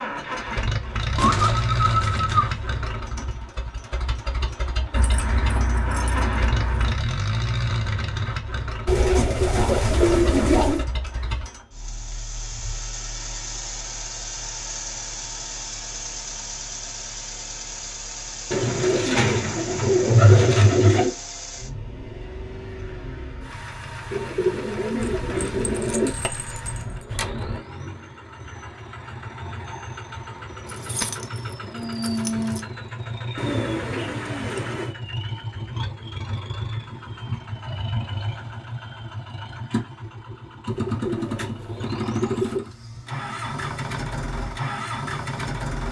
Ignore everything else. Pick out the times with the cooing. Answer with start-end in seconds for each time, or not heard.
1.1-2.5, 8.8-10.8, 18.5-21.1, 24.1-26.1, 33.4-35.0, 40.6-42.6.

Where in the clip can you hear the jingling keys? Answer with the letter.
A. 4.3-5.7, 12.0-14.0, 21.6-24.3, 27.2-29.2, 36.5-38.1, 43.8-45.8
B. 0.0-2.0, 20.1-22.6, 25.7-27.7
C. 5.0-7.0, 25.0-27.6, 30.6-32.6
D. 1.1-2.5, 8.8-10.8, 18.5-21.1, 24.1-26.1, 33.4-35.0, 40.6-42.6
C.